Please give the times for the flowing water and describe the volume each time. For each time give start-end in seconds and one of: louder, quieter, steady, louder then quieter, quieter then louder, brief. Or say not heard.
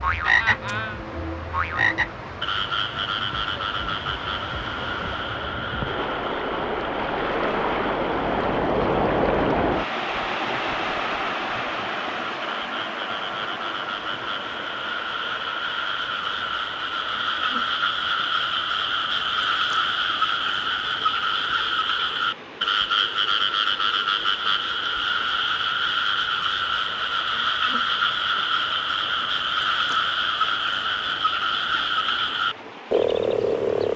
0.0-33.9 louder then quieter.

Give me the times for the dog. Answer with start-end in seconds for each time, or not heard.
not heard.